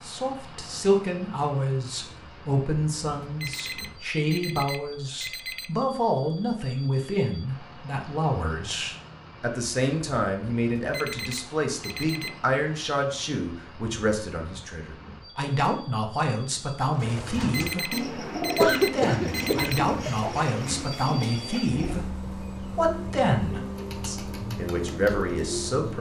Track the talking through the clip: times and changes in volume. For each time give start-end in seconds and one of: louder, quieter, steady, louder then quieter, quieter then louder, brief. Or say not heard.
0.0-25.9 steady.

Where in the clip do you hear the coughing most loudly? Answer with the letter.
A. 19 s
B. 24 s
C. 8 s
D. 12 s
A.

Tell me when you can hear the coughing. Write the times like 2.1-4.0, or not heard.
18.6-20.4.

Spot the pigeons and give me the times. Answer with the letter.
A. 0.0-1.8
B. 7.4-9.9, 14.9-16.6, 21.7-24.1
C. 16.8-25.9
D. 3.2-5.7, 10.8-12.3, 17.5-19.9
C.